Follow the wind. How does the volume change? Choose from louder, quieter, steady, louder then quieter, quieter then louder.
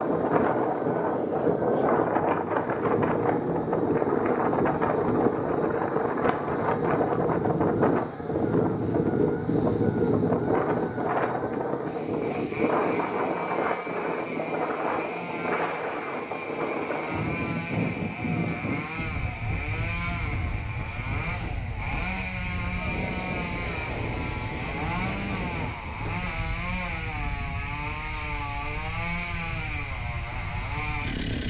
quieter.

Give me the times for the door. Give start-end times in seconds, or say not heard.
not heard.